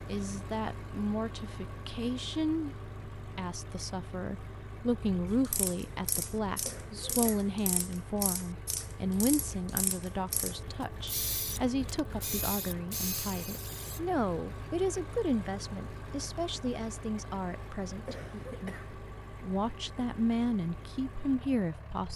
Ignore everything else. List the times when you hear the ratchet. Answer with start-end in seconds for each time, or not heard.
5.2-14.0.